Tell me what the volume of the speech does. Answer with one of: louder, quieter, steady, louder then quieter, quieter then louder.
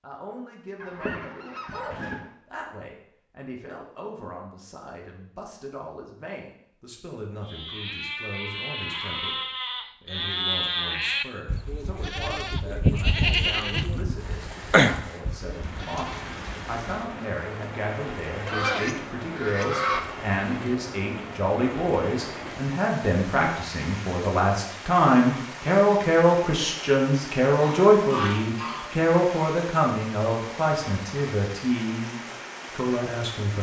louder.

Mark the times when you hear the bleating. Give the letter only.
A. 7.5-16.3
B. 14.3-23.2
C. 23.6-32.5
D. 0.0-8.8
A.